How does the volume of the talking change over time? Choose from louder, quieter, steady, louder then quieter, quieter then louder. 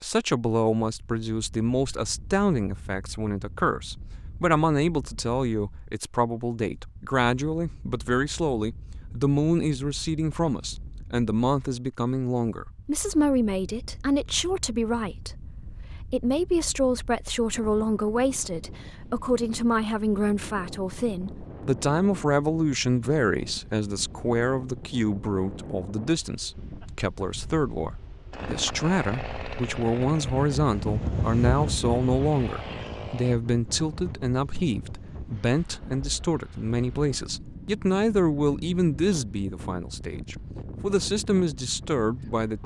steady.